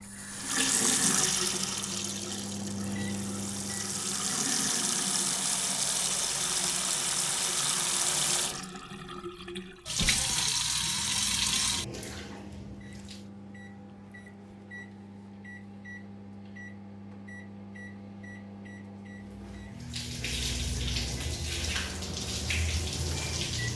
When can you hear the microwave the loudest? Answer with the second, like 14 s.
3 s.